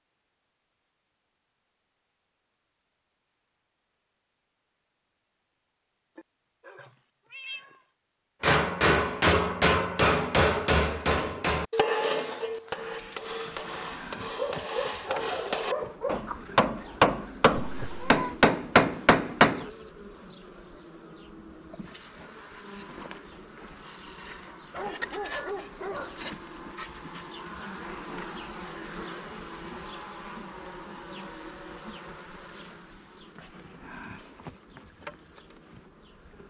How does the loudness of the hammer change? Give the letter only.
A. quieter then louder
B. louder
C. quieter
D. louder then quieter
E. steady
A.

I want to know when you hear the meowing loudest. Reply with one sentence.
The loudest moment of the meowing is at 18 seconds.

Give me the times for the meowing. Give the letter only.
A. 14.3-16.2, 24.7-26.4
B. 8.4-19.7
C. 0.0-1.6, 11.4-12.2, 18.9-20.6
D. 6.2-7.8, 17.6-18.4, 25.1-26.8
D.